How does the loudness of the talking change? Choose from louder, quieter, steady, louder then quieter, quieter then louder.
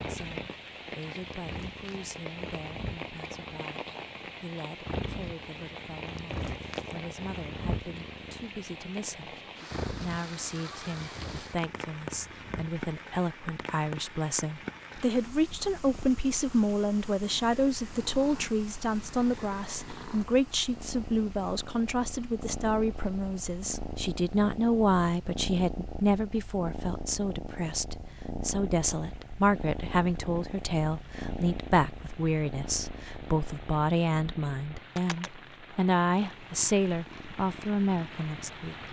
louder.